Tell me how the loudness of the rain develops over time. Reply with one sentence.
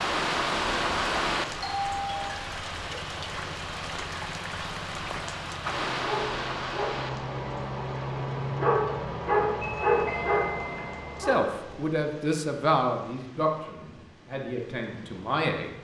The volume of the rain goes down.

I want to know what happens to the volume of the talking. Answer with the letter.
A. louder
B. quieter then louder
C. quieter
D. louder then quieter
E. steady
C.